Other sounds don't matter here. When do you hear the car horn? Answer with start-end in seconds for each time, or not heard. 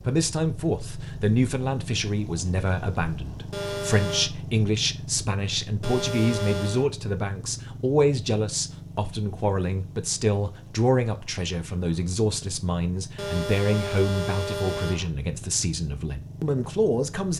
3.5-4.3, 5.8-6.8, 13.2-15.1.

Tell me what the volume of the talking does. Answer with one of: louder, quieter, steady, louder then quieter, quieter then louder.
steady.